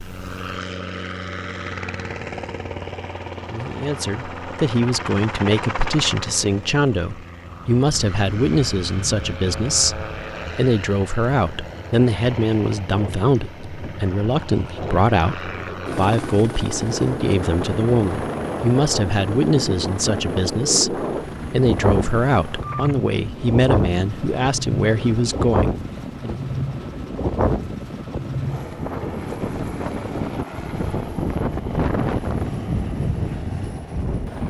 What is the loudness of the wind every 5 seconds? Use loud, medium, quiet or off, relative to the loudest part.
off, medium, medium, loud, loud, loud, loud.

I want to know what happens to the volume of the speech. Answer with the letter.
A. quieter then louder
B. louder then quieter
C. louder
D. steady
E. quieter
D.